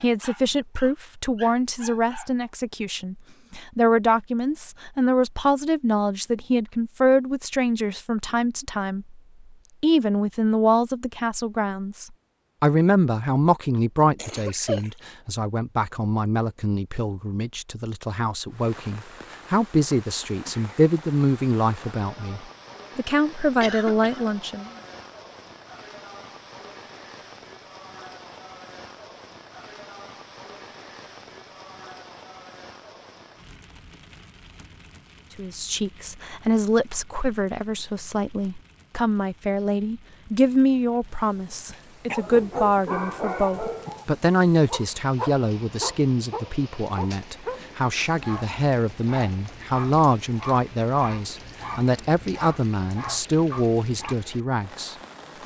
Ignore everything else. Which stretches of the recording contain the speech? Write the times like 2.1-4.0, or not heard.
0.0-9.2, 9.8-24.7, 35.4-55.4.